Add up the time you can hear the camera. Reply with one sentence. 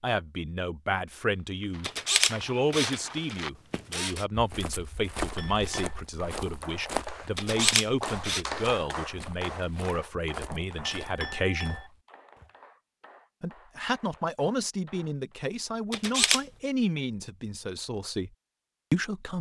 The camera can be heard for 4 seconds in total.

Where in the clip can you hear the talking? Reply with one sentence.
The talking can be heard from 0.0 to 11.8 s, from 13.4 to 18.3 s and from 18.9 to 19.3 s.